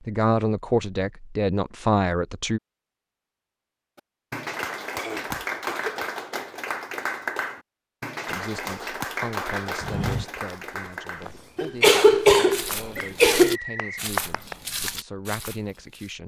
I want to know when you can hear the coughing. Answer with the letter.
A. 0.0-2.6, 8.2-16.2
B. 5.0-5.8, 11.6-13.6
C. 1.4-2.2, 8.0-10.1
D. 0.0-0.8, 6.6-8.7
B.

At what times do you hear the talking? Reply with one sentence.
You can hear the talking from 0.0 to 2.6 s and from 8.2 to 16.2 s.